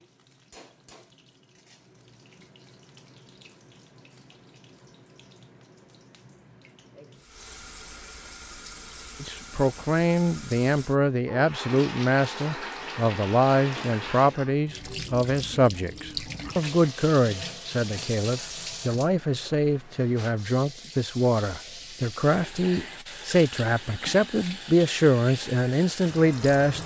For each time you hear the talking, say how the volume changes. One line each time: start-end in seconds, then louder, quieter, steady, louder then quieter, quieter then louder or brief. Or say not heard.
9.2-26.8 steady.